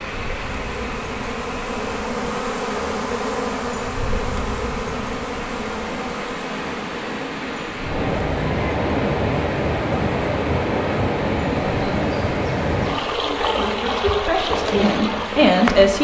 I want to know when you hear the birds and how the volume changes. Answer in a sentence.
The birds can't be heard in this clip.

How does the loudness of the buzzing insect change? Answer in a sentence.
The loudness of the buzzing insect goes down.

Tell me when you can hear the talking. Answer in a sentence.
You can hear the talking from 13.2 to 15.9 s.